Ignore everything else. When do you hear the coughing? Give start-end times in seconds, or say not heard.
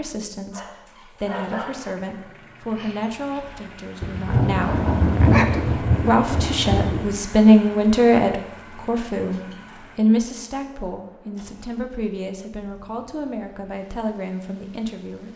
not heard.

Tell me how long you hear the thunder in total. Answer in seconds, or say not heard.
3 s.